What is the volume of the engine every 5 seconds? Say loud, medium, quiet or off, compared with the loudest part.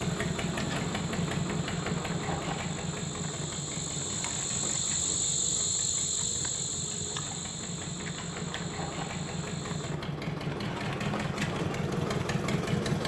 loud, medium, loud.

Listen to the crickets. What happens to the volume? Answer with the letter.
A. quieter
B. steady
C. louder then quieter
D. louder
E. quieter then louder
C.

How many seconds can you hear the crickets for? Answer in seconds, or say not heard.
10 s.